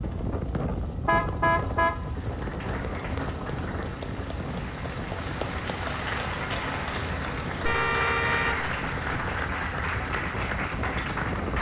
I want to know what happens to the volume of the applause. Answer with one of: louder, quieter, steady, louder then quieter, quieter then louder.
louder.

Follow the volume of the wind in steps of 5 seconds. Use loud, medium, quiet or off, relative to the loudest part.
loud, medium, loud.